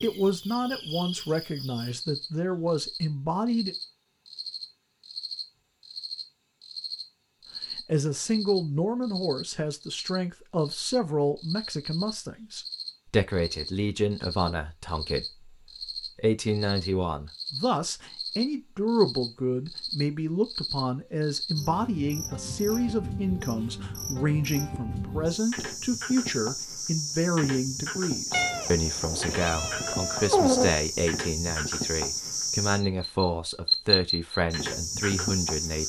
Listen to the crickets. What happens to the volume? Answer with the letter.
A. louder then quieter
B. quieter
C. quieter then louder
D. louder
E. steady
D.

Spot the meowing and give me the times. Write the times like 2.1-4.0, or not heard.
28.3-30.8.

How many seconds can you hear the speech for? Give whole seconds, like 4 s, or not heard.
32 s.